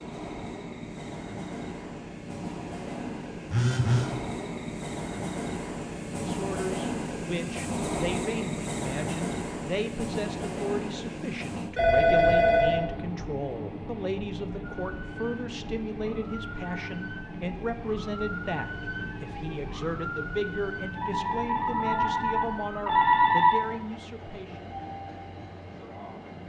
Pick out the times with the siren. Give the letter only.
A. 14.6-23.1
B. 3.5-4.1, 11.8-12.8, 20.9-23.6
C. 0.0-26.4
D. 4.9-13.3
A.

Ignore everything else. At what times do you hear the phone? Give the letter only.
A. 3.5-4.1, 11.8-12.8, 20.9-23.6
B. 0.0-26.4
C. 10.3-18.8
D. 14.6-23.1
A.